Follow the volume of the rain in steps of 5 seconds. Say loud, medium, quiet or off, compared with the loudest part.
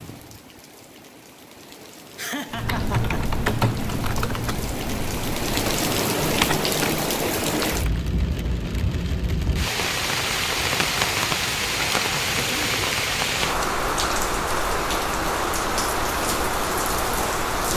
quiet, loud, loud, loud.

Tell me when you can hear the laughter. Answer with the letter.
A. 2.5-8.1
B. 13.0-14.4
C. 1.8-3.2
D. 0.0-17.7
C.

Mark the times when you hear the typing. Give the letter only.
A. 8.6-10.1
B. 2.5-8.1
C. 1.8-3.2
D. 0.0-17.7
B.